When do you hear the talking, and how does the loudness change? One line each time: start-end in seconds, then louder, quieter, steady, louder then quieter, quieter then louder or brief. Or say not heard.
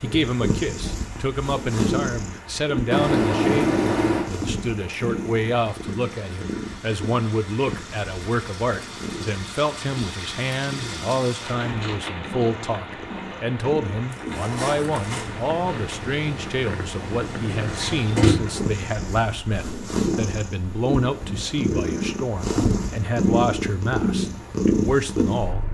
0.0-25.7 steady.